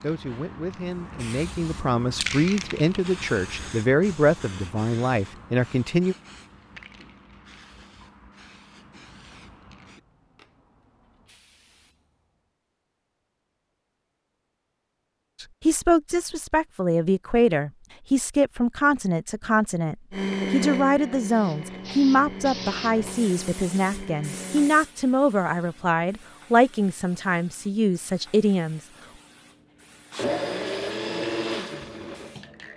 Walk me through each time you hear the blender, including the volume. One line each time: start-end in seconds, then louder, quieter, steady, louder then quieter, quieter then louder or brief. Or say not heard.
20.1-24.8 quieter
30.1-32.5 brief.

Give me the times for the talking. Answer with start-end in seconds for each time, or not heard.
0.0-6.2, 15.4-28.8.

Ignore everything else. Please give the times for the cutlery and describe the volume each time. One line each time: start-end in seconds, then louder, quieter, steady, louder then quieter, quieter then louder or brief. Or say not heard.
not heard.